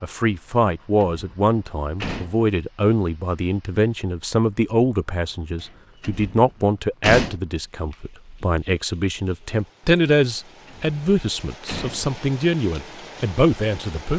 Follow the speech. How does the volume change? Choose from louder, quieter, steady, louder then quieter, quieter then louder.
steady.